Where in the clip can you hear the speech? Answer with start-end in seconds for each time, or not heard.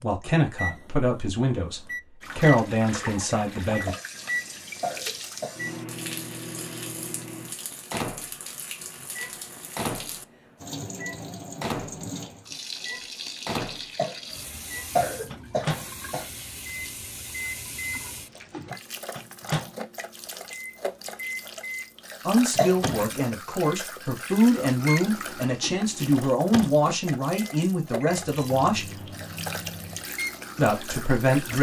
0.0-4.0, 22.2-28.9, 30.6-31.5.